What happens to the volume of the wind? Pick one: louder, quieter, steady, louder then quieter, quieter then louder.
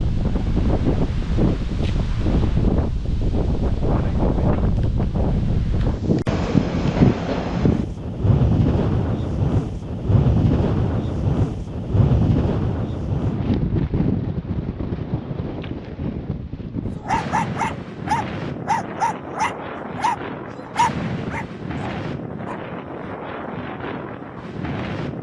quieter.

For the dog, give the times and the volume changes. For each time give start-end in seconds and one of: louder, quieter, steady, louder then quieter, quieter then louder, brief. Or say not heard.
17.0-22.6 quieter.